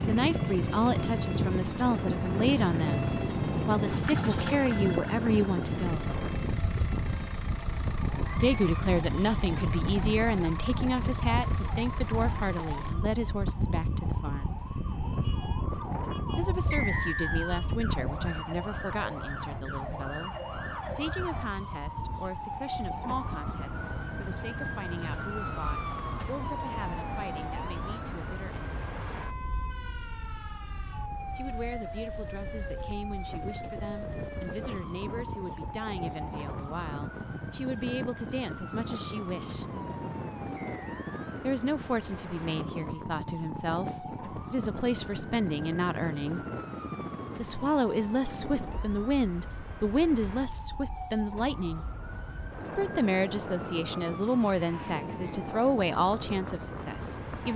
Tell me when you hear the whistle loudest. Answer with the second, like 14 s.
17 s.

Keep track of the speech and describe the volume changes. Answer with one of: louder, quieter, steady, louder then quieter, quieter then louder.
quieter then louder.